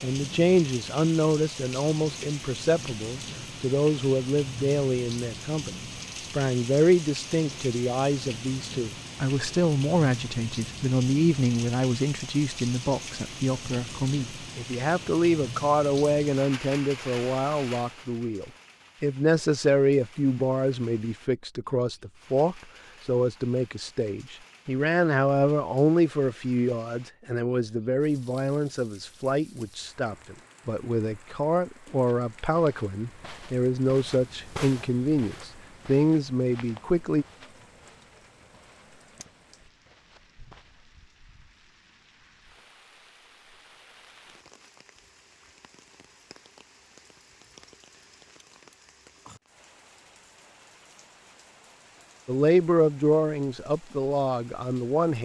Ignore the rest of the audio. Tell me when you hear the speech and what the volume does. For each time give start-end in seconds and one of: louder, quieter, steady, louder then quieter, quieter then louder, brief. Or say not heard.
0.0-37.2 steady
52.2-55.2 brief.